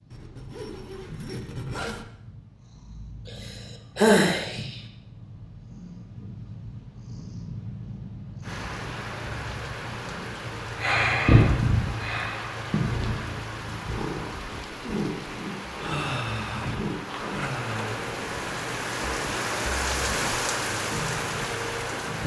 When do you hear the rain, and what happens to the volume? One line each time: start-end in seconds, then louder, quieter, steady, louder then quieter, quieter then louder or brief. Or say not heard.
8.4-22.2 louder.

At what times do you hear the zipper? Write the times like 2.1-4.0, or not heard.
0.1-2.0, 17.1-17.6.